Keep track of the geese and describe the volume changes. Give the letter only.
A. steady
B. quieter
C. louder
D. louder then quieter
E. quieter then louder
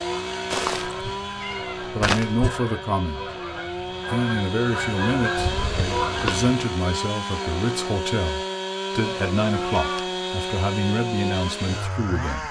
C.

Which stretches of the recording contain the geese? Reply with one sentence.
You can hear the geese from 0.0 to 6.4 s.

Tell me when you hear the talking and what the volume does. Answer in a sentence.
The talking can be heard from 1.9 to 12.4 s, at a steady volume.